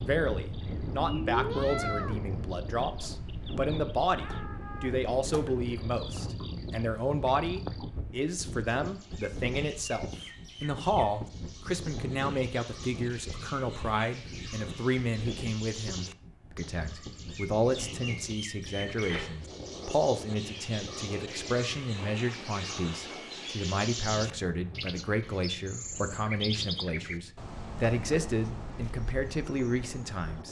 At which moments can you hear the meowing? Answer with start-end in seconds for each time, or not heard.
1.1-2.2.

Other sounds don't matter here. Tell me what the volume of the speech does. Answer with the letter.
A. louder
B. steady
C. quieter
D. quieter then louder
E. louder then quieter
B.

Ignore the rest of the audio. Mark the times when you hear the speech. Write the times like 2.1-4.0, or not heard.
0.0-30.4.